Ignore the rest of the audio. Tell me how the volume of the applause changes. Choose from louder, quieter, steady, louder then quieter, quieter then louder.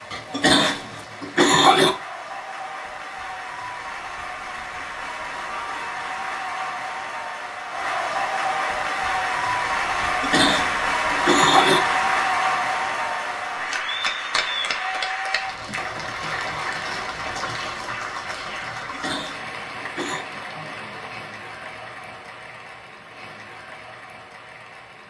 louder then quieter.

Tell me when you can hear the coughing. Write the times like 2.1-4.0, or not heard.
0.1-1.9, 10.0-11.8, 18.8-20.2.